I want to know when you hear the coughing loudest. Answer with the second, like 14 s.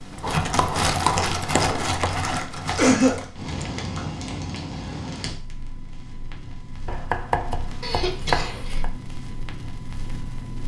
3 s.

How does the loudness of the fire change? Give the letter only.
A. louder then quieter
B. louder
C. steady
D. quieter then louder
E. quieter
E.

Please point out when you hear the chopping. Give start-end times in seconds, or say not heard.
0.2-2.2, 6.8-8.9.